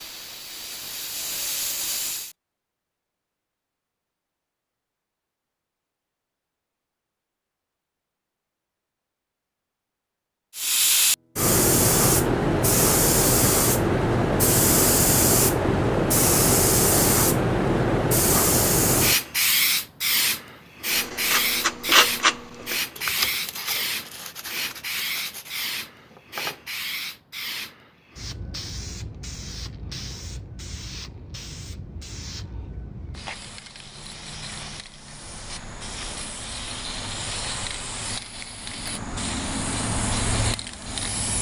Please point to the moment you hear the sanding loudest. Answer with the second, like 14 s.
22 s.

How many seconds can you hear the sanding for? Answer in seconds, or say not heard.
6 s.